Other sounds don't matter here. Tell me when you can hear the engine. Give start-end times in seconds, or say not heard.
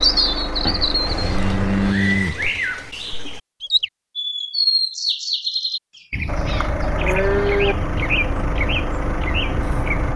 0.0-1.9, 6.2-10.1.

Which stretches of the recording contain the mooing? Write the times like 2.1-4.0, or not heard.
0.7-2.6, 6.0-7.8.